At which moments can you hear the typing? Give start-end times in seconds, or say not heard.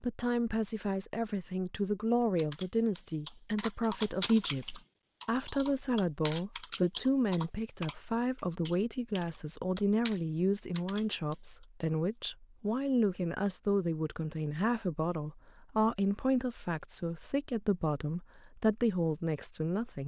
2.4-11.3.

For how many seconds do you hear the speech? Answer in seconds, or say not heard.
20 s.